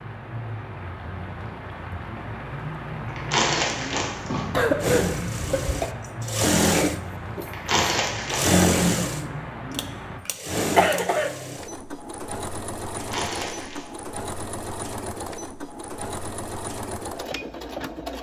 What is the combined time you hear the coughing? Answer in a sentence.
The coughing can be heard for 3 seconds in total.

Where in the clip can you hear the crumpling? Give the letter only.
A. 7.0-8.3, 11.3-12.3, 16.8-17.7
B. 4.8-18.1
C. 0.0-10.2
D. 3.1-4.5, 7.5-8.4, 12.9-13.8
D.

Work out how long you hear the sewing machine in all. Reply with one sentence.
The sewing machine can be heard for 13 seconds in total.